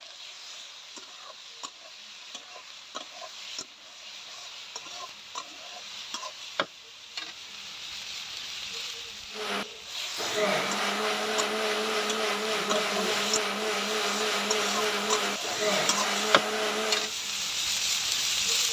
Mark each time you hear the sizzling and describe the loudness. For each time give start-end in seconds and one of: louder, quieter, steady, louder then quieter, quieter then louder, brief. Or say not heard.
0.0-18.6 louder.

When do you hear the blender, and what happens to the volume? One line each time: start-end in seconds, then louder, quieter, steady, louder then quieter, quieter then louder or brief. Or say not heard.
9.3-17.1 steady.